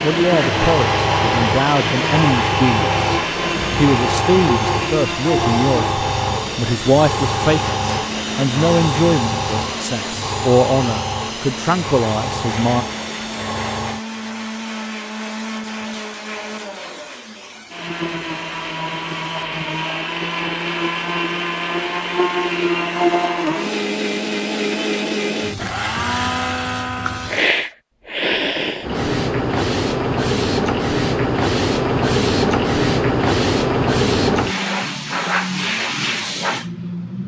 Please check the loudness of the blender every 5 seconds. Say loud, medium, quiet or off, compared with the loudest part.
loud, medium, medium, medium, loud, loud, off, off.